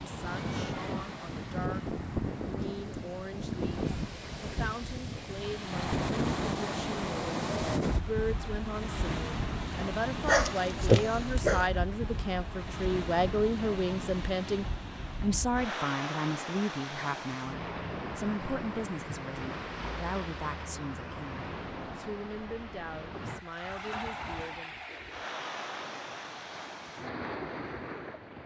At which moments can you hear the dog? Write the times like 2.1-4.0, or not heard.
10.2-11.7.